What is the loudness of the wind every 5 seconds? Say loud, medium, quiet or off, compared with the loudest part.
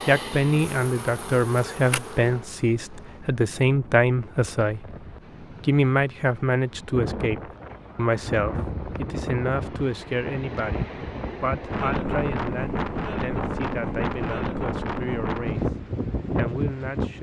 quiet, medium, loud, loud.